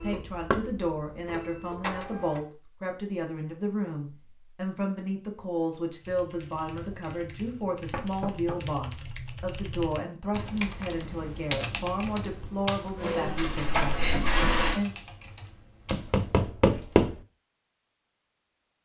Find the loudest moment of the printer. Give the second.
14 s.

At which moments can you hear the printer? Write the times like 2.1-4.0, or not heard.
0.0-2.5, 12.9-14.8.